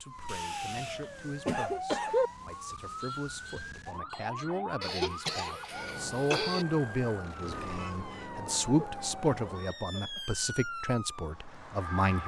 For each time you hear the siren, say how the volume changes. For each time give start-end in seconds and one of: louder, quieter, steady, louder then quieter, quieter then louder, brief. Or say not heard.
0.0-12.2 steady.